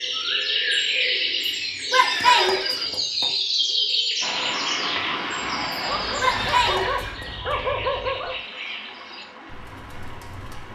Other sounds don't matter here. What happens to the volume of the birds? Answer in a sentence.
The loudness of the birds goes down.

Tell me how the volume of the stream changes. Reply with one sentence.
The volume of the stream goes down.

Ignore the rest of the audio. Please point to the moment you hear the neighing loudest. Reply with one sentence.
The volume of the neighing peaks at 2 seconds.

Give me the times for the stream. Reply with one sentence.
You can hear the stream from 4.2 to 10.7 s.